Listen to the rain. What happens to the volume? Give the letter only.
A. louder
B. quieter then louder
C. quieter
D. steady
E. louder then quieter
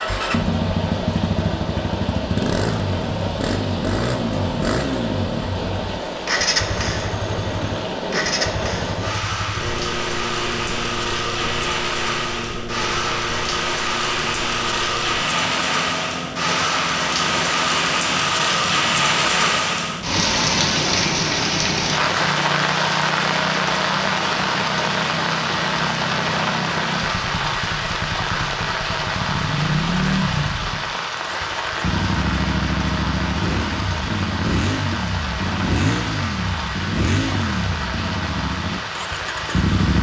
E.